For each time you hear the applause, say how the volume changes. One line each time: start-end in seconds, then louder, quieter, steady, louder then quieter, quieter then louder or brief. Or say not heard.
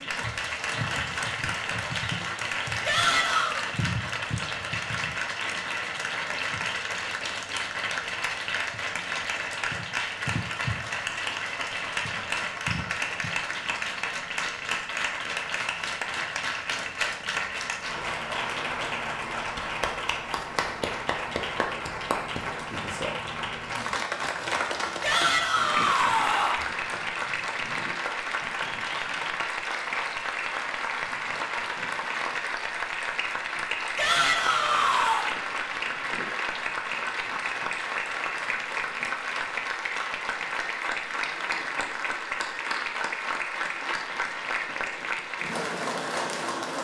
0.0-46.7 steady.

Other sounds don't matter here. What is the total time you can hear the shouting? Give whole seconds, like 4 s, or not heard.
4 s.